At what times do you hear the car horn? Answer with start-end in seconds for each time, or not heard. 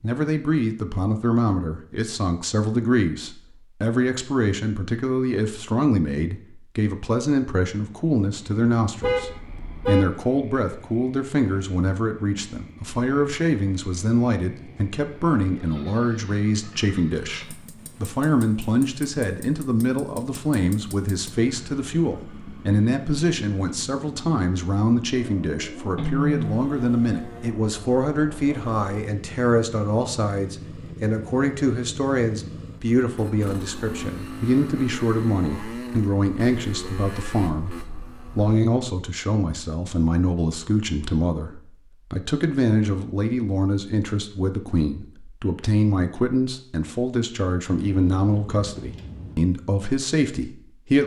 9.0-10.1, 25.9-26.6, 47.9-49.4.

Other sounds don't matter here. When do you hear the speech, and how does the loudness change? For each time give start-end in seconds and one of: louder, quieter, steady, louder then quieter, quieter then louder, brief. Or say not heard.
0.0-51.0 steady.